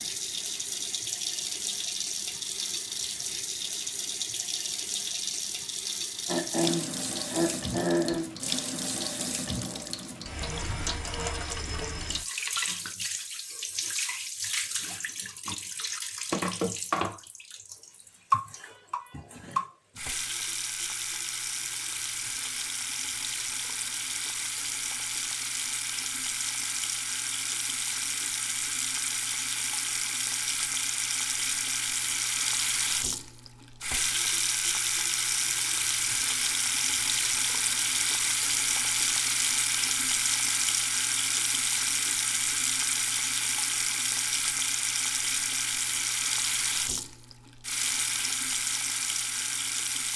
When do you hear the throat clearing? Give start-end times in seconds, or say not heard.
6.2-8.3.